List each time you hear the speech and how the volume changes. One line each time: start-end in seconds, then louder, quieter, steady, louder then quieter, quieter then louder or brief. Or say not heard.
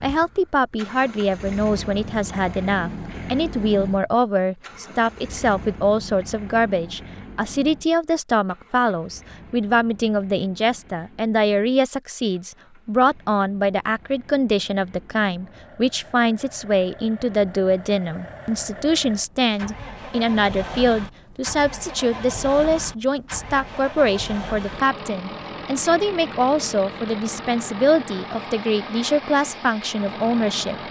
0.0-30.8 steady.